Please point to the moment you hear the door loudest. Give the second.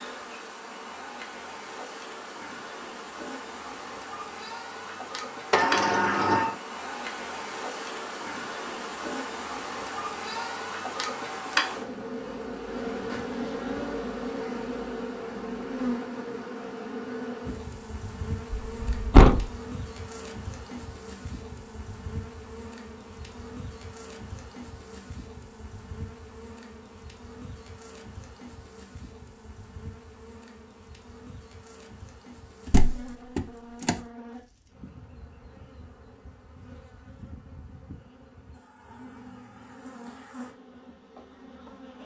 19 s.